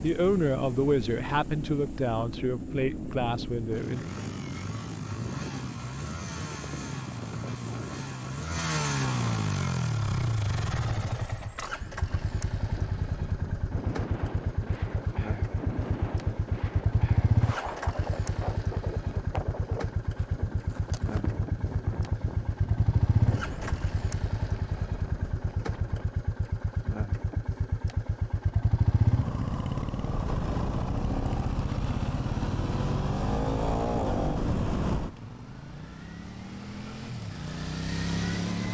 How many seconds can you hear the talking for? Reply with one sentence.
You can hear the talking for 4 seconds altogether.